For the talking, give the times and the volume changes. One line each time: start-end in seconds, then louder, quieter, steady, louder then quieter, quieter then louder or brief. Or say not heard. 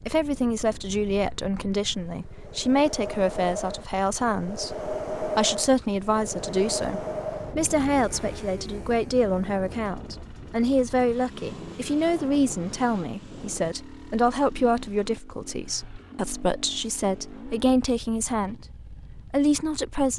0.1-20.1 steady.